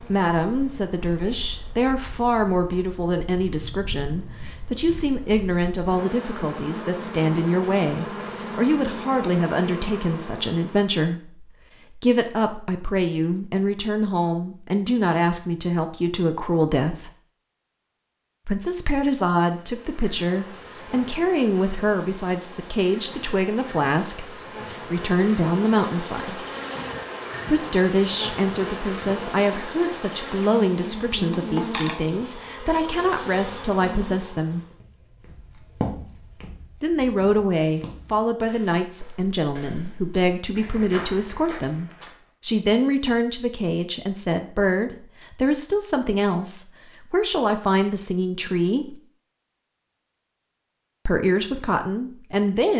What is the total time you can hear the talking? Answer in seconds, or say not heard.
46 s.